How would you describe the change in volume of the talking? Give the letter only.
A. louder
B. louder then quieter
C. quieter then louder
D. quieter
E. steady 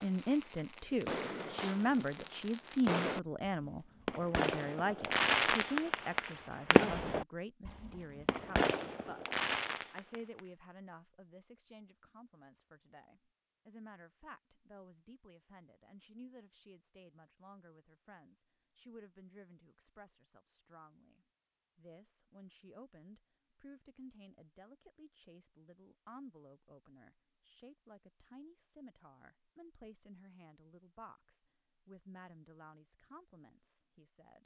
D.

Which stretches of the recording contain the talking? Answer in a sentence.
You can hear the talking from 0.0 to 34.4 s.